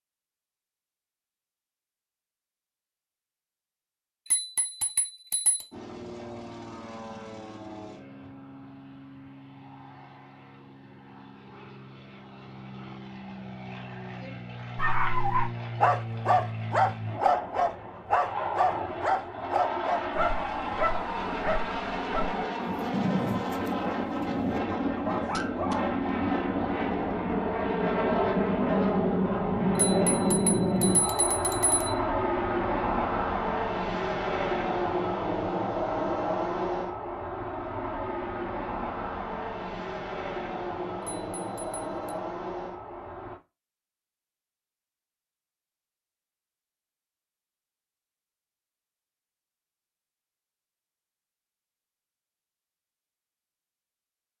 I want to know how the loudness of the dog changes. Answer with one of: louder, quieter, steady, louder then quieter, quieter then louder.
quieter.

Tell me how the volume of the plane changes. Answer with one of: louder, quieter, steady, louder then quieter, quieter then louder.
louder then quieter.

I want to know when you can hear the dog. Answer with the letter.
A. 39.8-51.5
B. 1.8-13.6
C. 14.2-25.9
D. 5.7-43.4
C.